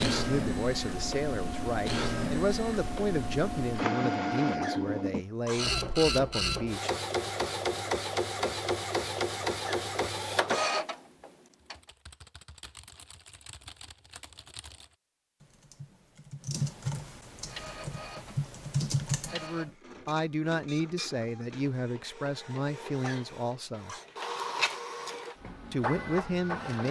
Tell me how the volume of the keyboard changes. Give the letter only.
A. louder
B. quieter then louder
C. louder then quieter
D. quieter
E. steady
A.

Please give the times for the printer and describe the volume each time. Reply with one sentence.
The printer can be heard from 0.0 to 11.8 s, at a steady volume; and from 17.3 to 26.8 s, getting louder.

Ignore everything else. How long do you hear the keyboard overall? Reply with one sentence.
You can hear the keyboard for 8 seconds altogether.